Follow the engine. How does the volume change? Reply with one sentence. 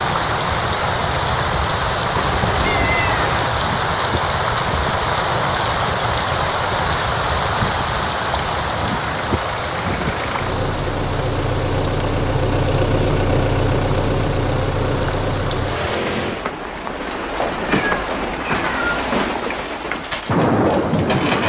The volume of the engine goes up.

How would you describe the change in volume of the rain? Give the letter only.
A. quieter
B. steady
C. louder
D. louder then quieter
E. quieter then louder
E.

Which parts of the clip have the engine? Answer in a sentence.
The engine can be heard from 0.0 to 16.5 s.